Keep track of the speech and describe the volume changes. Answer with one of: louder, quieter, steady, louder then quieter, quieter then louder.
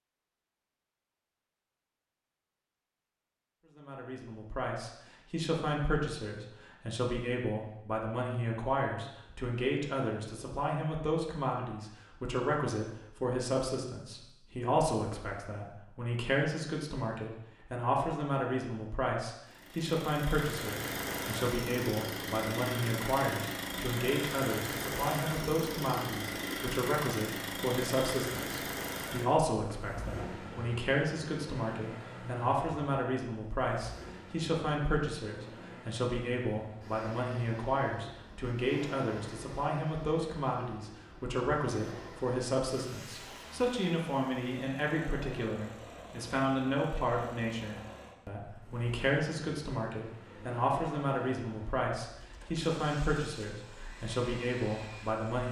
steady.